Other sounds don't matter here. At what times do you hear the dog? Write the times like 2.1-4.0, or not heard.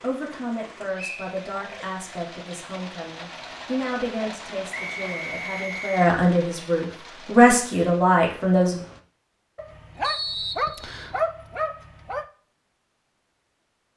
9.6-12.2.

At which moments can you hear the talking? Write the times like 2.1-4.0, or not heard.
0.0-8.8.